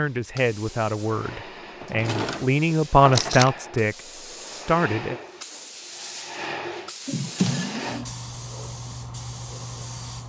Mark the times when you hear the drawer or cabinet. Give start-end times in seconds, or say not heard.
1.8-3.5, 7.0-8.1.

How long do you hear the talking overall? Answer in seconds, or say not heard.
5 s.